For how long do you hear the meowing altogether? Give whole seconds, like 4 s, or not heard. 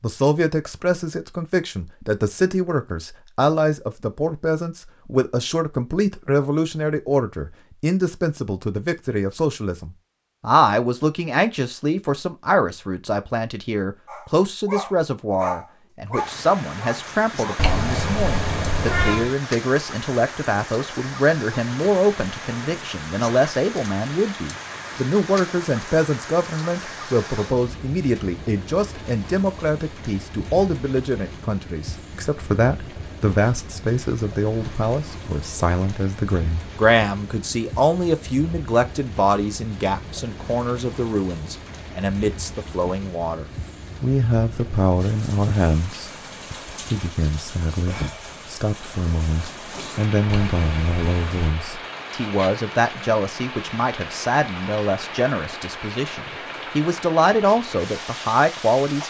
3 s.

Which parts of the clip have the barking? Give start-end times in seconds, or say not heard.
14.1-17.6.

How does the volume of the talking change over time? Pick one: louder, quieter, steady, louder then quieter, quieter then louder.
steady.